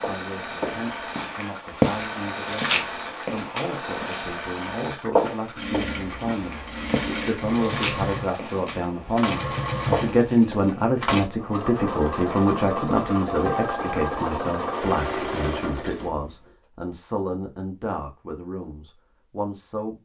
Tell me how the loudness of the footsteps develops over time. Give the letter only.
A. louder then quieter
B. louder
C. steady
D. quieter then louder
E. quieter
E.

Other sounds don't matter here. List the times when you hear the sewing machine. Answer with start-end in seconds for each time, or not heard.
0.0-16.3.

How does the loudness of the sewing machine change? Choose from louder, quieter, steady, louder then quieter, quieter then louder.
louder.